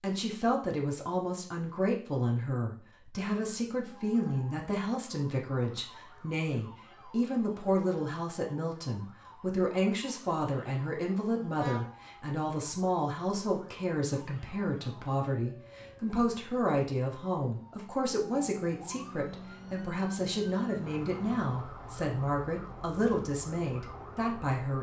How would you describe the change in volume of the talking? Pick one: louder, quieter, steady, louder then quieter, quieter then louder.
steady.